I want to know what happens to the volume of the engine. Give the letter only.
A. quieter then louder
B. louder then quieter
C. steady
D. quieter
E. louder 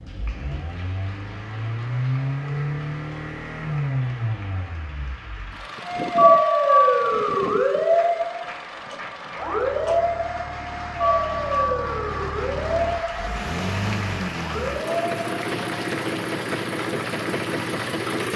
A.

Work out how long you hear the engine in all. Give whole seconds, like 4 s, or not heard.
18 s.